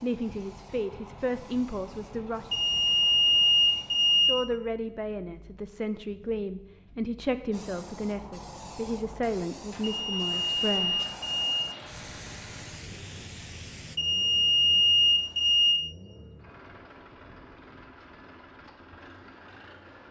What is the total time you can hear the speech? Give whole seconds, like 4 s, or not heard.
9 s.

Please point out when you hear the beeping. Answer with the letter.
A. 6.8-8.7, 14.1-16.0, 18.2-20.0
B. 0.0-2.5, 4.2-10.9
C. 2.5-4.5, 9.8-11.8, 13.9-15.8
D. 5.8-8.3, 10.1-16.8
C.